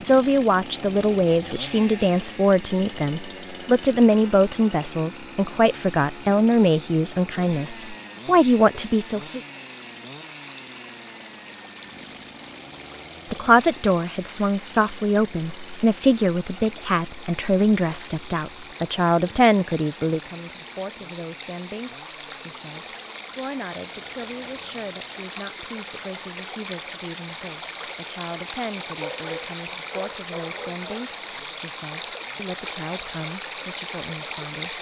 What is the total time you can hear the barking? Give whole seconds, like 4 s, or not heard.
2 s.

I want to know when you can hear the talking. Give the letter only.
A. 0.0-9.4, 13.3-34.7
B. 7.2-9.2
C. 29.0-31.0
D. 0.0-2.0
A.